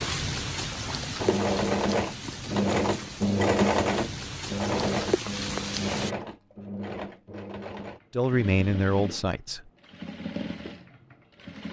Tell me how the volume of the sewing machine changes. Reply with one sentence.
The loudness of the sewing machine goes down.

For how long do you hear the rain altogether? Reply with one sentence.
The rain can be heard for 6 seconds in total.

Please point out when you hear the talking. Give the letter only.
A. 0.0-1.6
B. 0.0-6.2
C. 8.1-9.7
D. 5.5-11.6
C.